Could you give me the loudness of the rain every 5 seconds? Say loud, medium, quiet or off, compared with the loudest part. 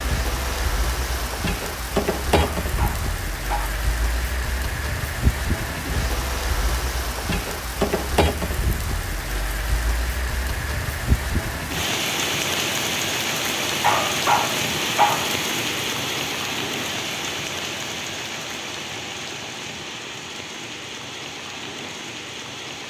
loud, loud, loud, loud, medium.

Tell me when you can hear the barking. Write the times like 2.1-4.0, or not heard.
2.4-3.8, 13.8-15.3.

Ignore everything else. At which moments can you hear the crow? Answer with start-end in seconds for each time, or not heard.
not heard.